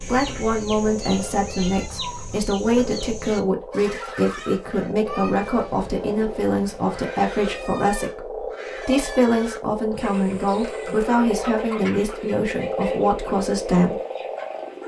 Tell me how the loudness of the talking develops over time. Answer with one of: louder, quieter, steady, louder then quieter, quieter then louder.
steady.